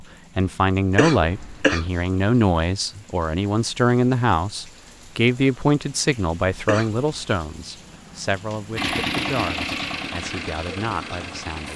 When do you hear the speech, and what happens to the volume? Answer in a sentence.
You can hear the speech from 0.0 to 11.7 s, getting quieter.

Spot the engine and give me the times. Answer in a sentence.
You can hear the engine from 8.8 to 11.7 s.